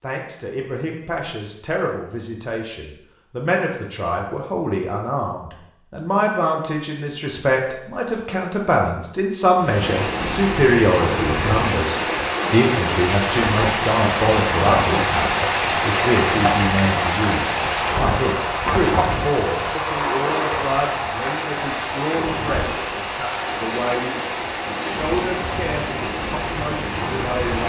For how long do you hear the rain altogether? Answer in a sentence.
You can hear the rain for 18 seconds altogether.